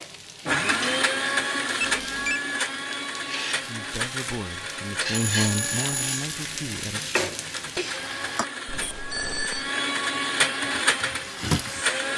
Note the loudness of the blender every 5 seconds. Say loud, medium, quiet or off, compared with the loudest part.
loud, medium, loud.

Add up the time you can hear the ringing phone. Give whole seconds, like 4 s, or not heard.
3 s.